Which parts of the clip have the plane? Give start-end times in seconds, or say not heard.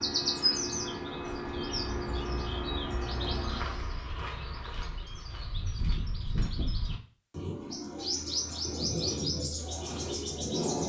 0.0-3.9.